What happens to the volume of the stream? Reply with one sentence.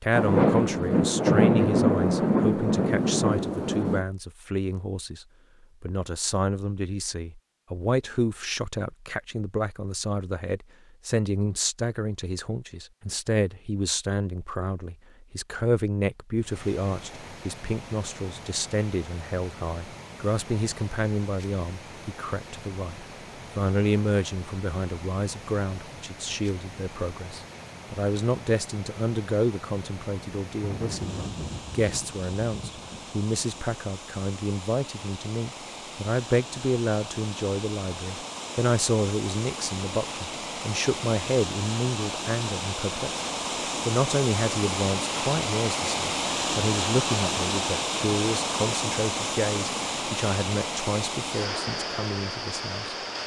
The volume of the stream goes up.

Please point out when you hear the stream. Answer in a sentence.
The stream can be heard from 16.4 to 53.2 s.